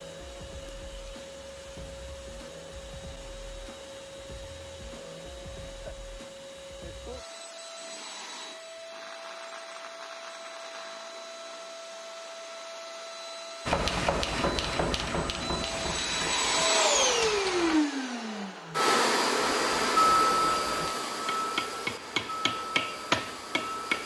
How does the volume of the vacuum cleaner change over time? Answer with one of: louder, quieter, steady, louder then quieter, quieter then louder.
louder.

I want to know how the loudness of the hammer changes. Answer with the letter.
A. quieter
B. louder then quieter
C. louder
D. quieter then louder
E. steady
D.